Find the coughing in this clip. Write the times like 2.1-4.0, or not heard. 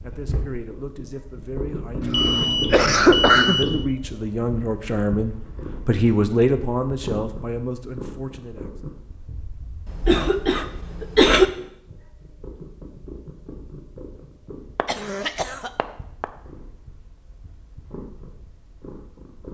2.0-3.8, 9.8-11.4, 14.8-16.2.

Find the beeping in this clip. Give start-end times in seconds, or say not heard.
2.1-3.7.